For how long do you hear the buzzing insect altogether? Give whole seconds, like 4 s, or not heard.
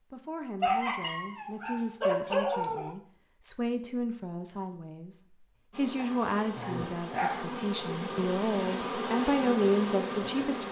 5 s.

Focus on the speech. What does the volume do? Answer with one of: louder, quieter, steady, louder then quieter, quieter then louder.
louder.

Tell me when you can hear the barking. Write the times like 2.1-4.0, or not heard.
0.6-3.0, 6.0-7.5.